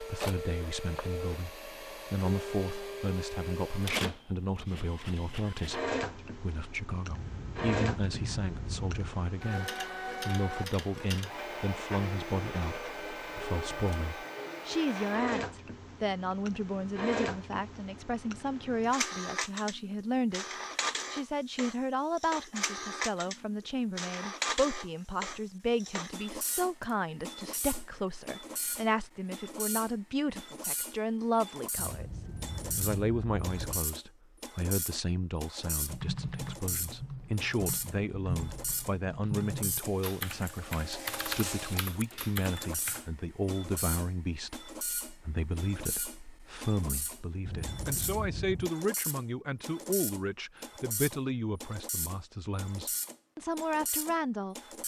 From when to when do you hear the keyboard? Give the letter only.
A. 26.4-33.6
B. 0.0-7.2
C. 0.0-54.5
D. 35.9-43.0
D.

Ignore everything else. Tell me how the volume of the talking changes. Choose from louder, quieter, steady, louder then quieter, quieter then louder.
steady.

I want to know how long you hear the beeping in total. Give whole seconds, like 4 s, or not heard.
5 s.